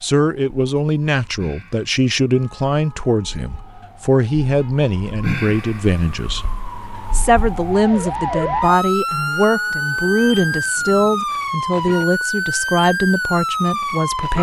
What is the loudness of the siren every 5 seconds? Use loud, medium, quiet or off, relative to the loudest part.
quiet, loud, loud.